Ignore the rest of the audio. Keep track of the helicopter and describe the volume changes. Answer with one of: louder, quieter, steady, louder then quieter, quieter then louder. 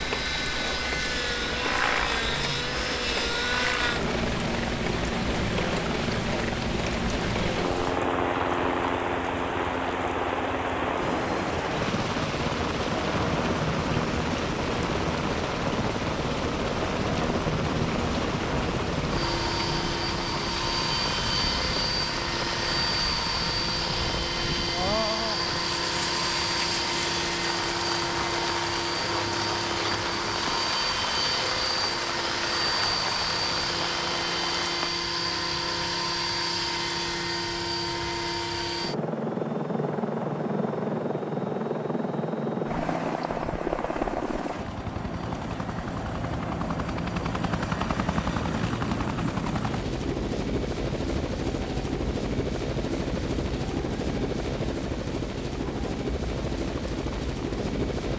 steady.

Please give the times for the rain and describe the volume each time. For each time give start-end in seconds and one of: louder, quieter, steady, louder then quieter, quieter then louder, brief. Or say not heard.
0.0-35.0 steady.